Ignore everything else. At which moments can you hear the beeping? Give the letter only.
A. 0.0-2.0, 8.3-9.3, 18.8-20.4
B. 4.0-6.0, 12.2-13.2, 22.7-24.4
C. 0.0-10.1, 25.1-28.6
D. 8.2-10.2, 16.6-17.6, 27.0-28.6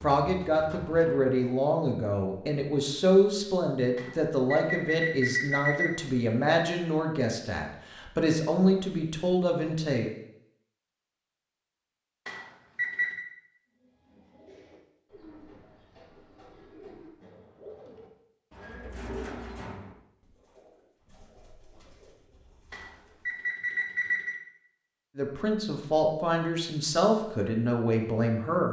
B.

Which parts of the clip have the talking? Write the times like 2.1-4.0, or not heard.
0.0-10.1, 25.1-28.6.